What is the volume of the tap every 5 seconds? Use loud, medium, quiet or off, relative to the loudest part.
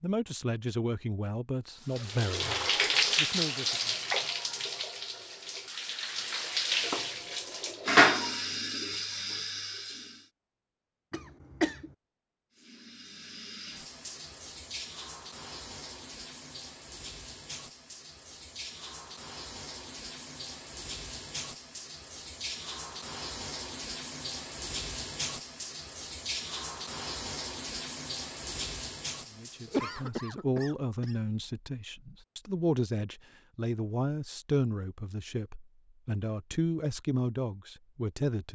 loud, loud, quiet, quiet, medium, medium, off, off.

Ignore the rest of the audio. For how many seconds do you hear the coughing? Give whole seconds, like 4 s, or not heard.
2 s.